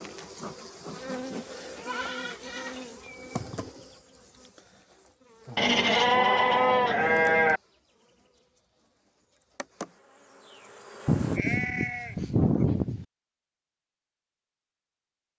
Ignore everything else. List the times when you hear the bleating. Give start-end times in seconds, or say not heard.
1.8-3.1, 5.5-7.6, 11.1-13.1.